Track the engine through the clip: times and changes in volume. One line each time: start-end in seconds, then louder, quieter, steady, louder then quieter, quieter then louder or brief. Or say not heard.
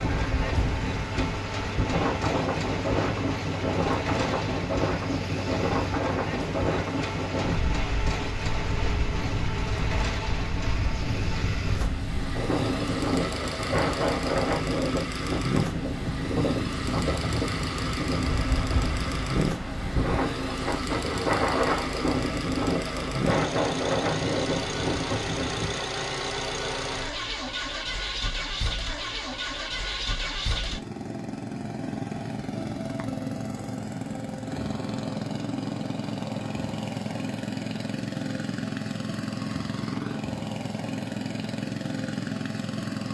0.0-43.0 steady.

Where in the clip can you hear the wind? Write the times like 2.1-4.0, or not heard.
0.0-25.8.